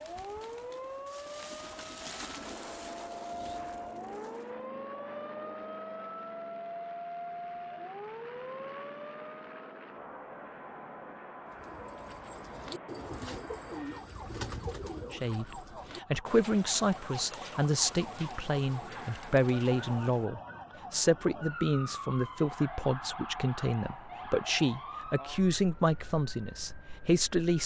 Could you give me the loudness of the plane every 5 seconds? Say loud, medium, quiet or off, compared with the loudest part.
loud, loud, loud, off, off, off.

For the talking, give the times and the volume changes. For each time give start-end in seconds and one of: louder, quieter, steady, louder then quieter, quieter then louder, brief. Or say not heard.
15.1-27.6 steady.